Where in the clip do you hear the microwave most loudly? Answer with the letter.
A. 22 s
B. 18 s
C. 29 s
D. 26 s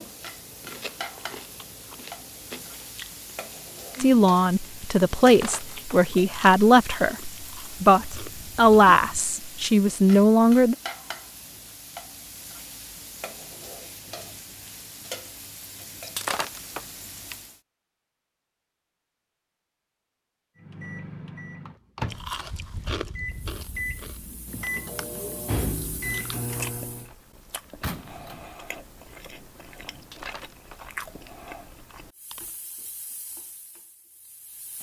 D.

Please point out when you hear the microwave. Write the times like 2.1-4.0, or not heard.
20.6-27.1.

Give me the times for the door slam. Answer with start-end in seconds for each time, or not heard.
27.8-28.4.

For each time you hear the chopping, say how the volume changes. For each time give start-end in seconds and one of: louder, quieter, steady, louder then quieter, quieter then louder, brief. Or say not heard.
not heard.